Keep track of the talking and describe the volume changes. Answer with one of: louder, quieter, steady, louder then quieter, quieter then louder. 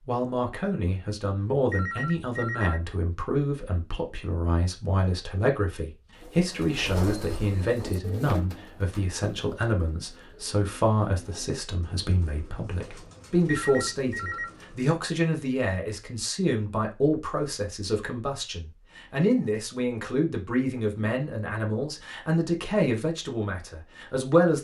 steady.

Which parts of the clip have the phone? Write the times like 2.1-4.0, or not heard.
1.7-2.8, 13.4-14.5.